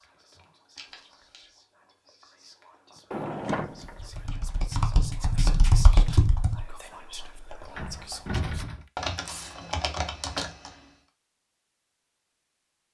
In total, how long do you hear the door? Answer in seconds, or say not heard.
2 s.